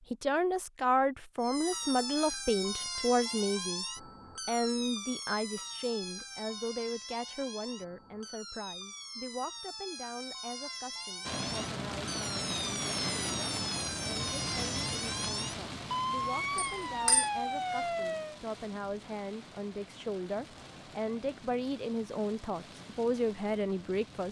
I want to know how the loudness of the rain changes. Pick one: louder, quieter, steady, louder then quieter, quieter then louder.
quieter.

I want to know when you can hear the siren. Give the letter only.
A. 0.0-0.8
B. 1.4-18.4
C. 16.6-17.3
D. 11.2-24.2
B.